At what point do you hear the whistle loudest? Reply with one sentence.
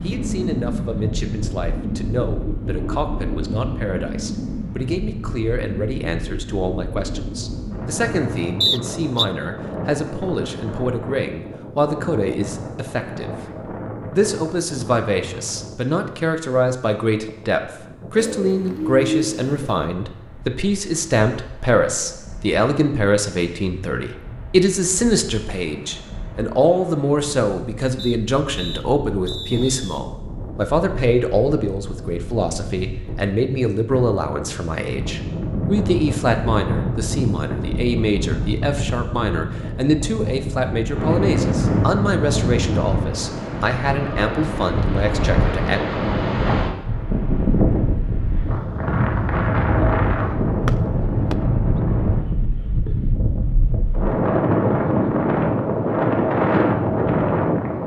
The loudest moment of the whistle is at 9 seconds.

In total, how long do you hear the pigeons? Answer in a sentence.
You can hear the pigeons for 2 seconds altogether.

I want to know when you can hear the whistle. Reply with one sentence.
You can hear the whistle from 8.6 to 9.2 s, from 27.9 to 29.9 s and from 50.6 to 51.4 s.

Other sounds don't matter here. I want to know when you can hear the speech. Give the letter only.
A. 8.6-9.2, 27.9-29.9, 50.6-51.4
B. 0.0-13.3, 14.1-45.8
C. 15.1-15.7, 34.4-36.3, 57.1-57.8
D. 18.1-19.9
B.